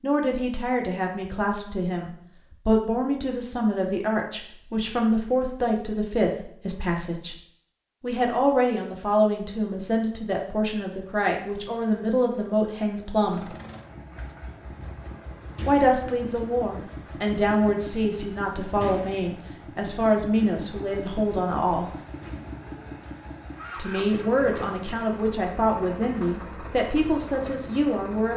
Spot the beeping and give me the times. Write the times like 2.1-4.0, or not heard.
not heard.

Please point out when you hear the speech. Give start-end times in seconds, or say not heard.
0.0-7.3, 8.0-13.4, 15.7-21.9, 23.8-28.3.